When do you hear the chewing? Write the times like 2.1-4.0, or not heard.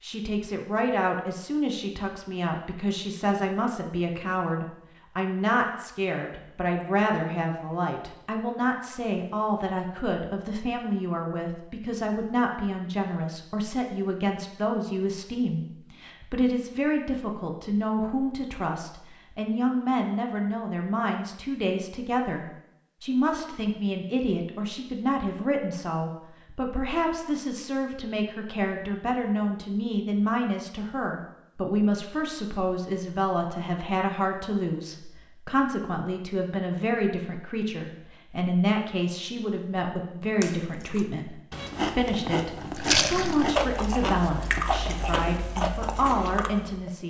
40.4-46.9.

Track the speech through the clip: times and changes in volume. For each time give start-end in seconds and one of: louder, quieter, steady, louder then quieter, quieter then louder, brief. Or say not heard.
0.0-47.0 steady.